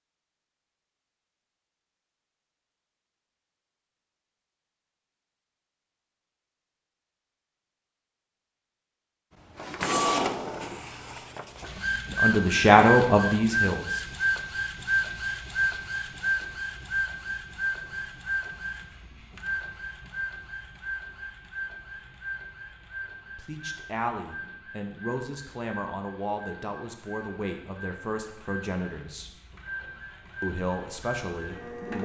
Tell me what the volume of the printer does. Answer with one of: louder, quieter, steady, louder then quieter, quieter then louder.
quieter.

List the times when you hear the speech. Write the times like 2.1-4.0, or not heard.
12.2-14.1, 23.4-29.3, 30.4-31.9.